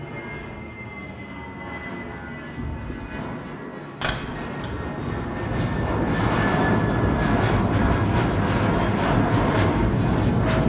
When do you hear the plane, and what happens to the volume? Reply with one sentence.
You can hear the plane from 0.0 to 10.6 s, getting louder.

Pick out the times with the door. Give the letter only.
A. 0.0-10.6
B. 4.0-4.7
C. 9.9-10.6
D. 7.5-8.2
B.